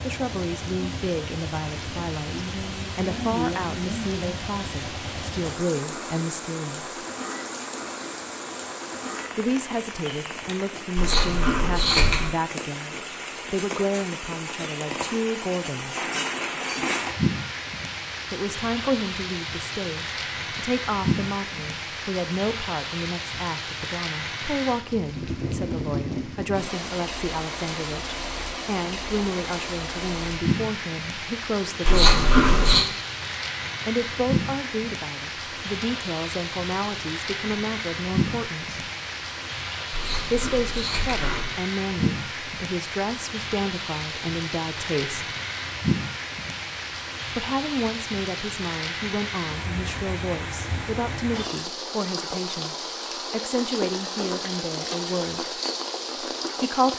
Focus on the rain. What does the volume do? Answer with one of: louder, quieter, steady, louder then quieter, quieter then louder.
steady.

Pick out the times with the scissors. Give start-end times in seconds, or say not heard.
10.9-12.3, 31.9-32.9, 39.9-41.5.